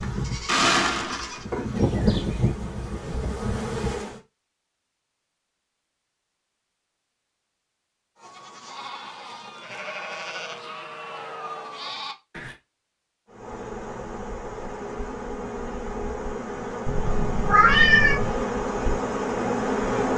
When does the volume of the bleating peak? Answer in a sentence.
The volume of the bleating peaks at 1 second.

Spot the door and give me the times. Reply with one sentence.
You can't hear the door here.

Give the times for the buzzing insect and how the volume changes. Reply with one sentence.
The buzzing insect can be heard from 0.0 to 4.2 s, getting louder then quieter; and from 13.3 to 20.1 s, getting louder.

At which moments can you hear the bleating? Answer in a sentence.
You can hear the bleating from 0.0 to 2.5 s and from 8.2 to 12.6 s.